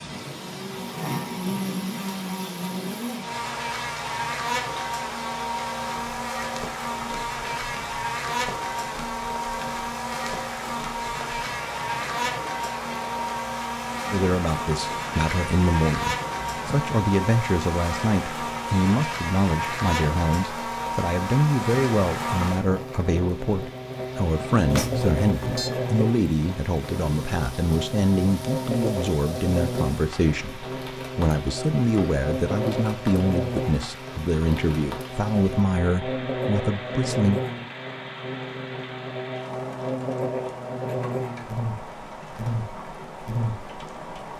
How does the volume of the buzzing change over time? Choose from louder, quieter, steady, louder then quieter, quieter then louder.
steady.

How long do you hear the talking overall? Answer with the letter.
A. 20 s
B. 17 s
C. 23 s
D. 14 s
C.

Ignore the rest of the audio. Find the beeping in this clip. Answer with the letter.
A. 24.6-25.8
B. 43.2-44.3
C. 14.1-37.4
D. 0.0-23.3
A.